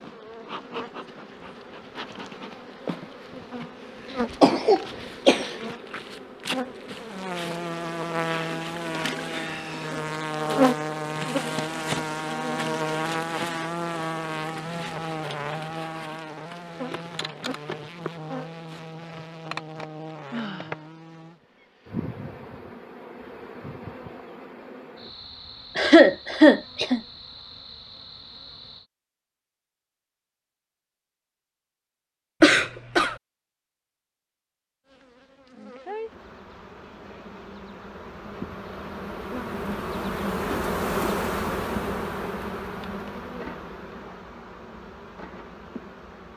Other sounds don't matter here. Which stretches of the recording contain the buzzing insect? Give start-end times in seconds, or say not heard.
0.0-28.9, 34.9-46.3.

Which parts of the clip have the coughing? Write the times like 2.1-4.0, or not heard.
4.2-5.5, 25.8-27.0, 32.4-33.1.